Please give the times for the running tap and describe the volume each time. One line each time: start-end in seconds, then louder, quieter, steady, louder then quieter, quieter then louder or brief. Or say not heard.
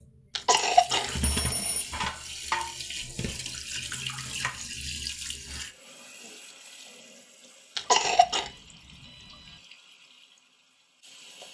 0.0-11.4 quieter.